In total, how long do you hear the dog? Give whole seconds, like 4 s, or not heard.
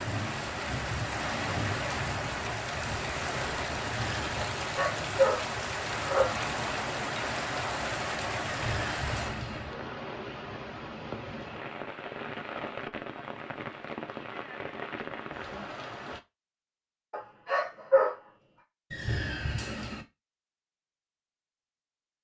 3 s.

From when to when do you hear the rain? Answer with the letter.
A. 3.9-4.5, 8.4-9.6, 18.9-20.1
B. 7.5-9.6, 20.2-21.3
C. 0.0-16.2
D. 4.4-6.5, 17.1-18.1
C.